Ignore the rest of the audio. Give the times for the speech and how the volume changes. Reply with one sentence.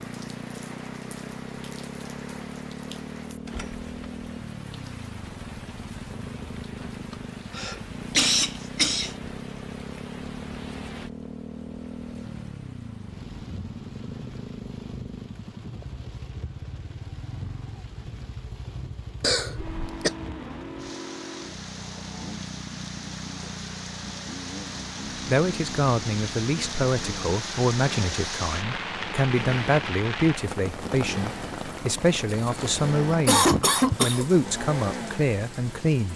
The speech can be heard from 25.2 to 36.1 s, at a steady volume.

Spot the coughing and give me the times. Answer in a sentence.
The coughing can be heard from 7.5 to 9.2 s, from 19.2 to 20.1 s and from 32.3 to 34.4 s.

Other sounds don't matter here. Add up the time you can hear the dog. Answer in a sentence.
The dog can't be heard in this clip.